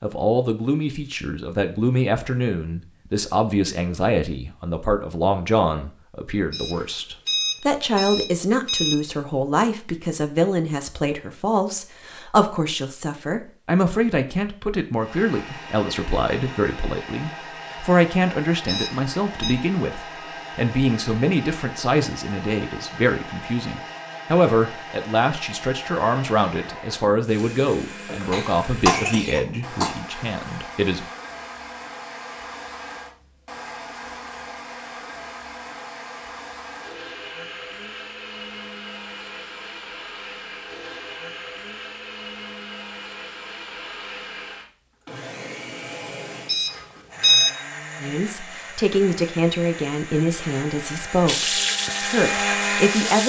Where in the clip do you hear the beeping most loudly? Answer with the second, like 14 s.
47 s.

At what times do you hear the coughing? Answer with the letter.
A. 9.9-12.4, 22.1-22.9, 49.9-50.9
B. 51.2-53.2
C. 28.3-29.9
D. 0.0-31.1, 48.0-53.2
C.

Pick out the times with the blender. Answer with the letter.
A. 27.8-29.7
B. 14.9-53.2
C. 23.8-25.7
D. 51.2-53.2
B.